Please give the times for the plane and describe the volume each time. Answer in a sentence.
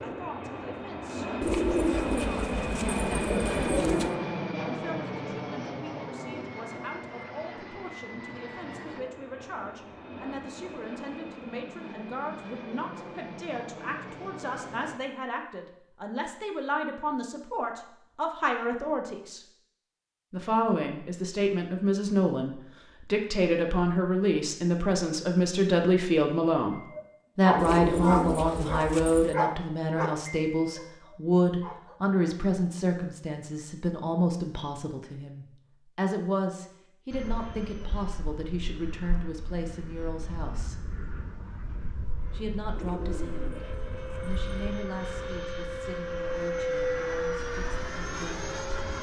The plane can be heard from 0.0 to 15.0 s, getting quieter; and from 37.1 to 48.9 s, getting louder.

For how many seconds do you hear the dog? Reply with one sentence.
You can hear the dog for 5 seconds altogether.